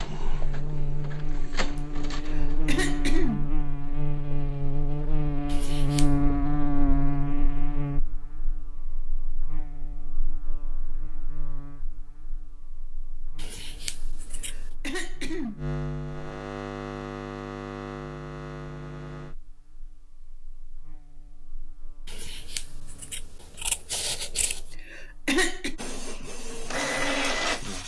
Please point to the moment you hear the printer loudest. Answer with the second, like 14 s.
27 s.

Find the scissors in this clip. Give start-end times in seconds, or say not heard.
5.5-6.2, 13.3-14.7, 22.1-24.8.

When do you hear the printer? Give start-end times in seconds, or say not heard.
0.0-3.1, 25.8-27.8.